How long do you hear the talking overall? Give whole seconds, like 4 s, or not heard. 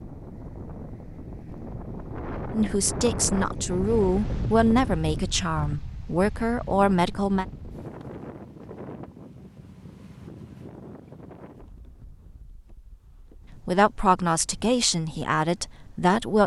8 s.